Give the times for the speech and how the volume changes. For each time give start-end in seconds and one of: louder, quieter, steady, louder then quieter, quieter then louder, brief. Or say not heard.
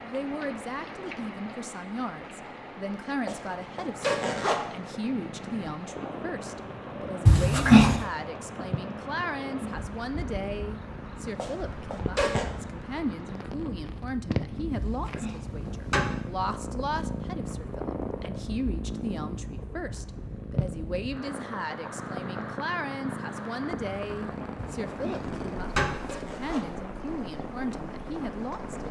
0.0-28.8 steady.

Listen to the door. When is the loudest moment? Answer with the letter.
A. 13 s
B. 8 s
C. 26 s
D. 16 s
B.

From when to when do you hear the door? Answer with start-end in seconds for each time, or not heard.
7.2-8.1, 14.8-16.1, 24.6-25.9.